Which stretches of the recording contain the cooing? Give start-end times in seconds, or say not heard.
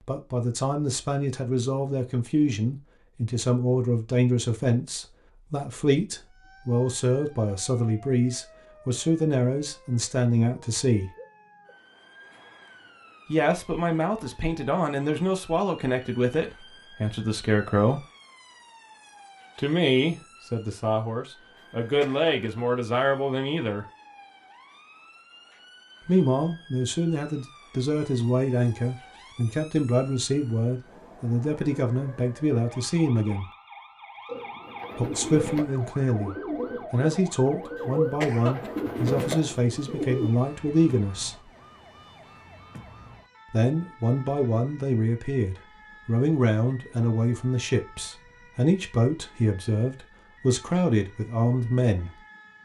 34.2-40.3.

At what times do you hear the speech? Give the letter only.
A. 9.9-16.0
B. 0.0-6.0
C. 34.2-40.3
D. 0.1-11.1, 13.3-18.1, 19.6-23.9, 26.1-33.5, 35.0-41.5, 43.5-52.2
D.